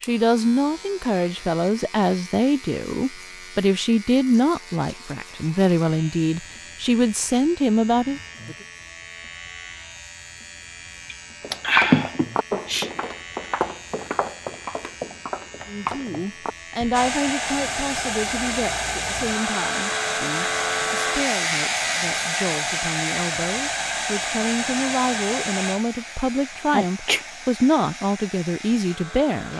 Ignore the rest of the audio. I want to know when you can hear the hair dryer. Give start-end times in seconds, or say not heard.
16.9-29.5.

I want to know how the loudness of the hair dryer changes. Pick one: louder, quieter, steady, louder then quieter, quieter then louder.
quieter.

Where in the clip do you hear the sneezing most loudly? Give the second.
12 s.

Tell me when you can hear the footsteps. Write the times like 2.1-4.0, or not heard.
11.4-17.1.